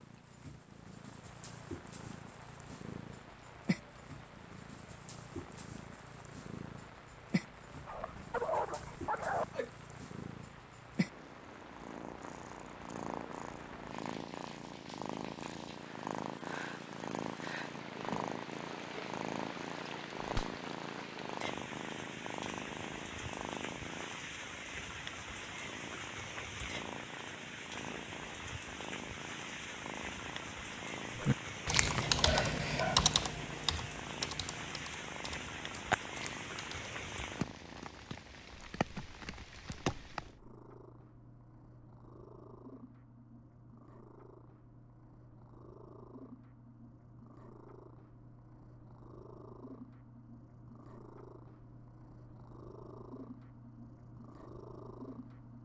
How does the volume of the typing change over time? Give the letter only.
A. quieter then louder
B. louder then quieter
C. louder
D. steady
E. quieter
A.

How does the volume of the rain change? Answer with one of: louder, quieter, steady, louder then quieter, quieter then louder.
louder.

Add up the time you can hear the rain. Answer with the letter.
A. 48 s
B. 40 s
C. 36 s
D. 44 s
B.